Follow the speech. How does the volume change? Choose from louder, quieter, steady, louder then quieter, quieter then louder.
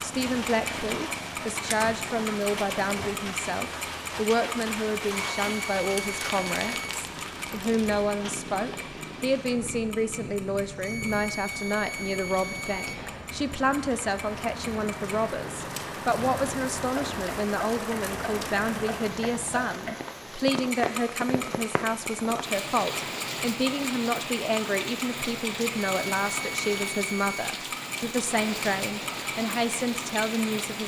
steady.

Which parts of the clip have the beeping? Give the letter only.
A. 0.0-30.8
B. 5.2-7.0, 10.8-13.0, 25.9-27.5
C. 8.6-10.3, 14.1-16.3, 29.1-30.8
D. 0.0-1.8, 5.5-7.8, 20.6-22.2
B.